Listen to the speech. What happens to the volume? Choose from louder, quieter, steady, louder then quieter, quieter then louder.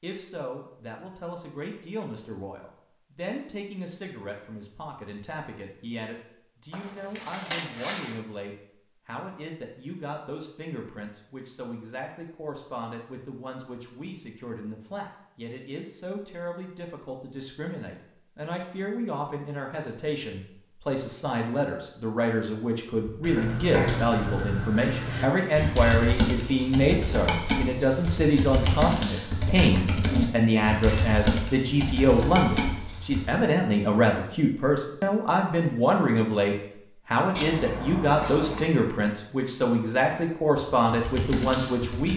louder.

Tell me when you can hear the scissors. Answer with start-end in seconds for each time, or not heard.
6.7-8.2, 37.4-38.7.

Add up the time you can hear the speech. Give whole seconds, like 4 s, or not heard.
42 s.